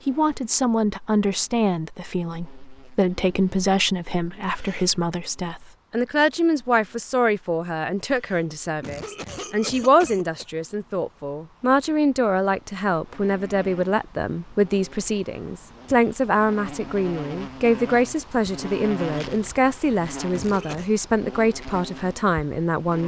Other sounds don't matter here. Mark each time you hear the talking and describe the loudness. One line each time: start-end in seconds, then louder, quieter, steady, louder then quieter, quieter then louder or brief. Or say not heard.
0.1-23.0 steady.